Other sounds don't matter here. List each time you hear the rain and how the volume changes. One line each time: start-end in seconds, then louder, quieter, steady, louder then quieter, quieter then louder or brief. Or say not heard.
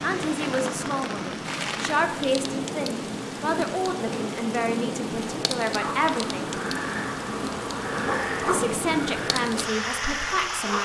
0.0-10.8 steady.